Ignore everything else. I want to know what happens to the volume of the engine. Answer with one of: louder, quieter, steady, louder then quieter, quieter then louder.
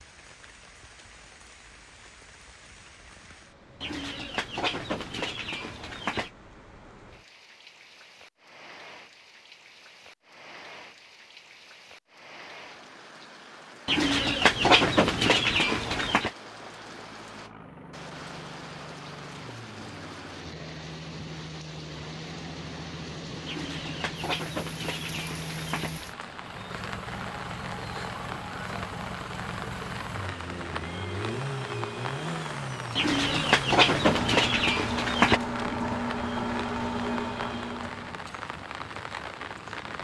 louder.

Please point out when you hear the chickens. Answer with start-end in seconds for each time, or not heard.
3.8-6.3, 13.8-16.3, 23.4-25.9, 33.0-35.4.